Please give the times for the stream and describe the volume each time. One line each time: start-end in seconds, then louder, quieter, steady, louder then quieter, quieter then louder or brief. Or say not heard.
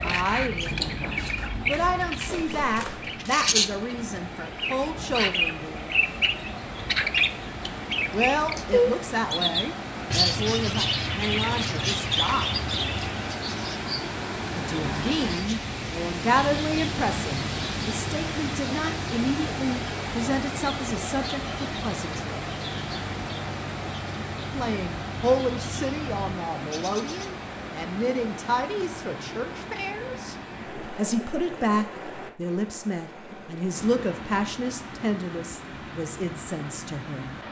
0.0-37.4 louder then quieter.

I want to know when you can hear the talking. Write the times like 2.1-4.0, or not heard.
0.0-6.0, 8.1-12.7, 14.5-22.5, 24.5-30.4, 30.9-37.4.